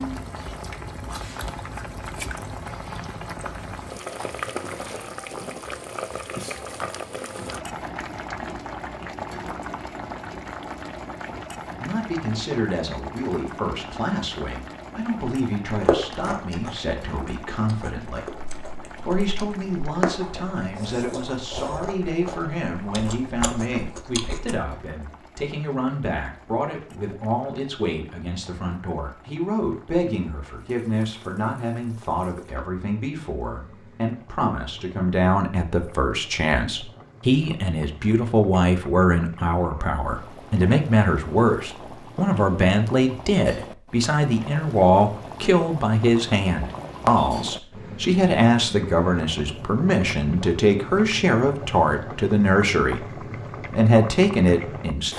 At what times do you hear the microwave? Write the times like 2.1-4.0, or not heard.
not heard.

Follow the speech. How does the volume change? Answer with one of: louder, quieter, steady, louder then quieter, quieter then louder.
louder.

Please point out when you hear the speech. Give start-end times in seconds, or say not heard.
11.7-55.1.